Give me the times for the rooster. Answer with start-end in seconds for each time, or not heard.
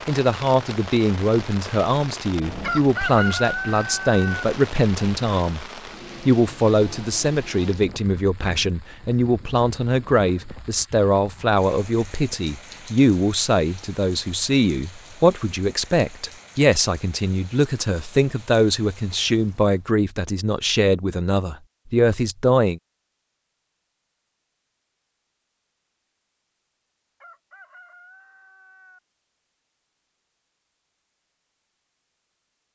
2.6-4.5, 27.2-29.0.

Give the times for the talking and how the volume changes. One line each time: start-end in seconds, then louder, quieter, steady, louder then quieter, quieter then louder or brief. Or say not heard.
0.1-22.8 steady.